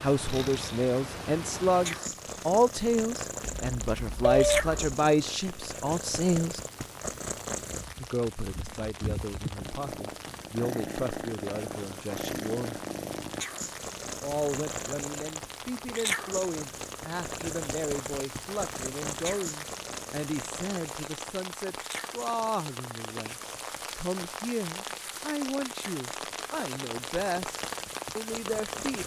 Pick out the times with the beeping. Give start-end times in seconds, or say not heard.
3.5-4.9.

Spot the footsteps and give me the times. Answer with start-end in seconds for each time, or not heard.
not heard.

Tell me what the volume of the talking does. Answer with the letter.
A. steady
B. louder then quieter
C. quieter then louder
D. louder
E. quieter
E.